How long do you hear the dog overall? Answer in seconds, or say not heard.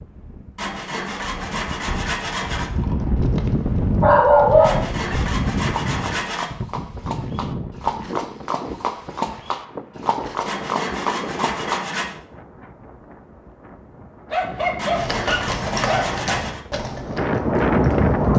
3 s.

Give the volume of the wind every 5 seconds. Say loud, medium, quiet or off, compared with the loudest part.
medium, medium, quiet, loud.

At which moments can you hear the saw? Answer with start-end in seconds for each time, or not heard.
0.6-2.7, 4.6-6.5, 10.4-12.2, 14.8-16.6.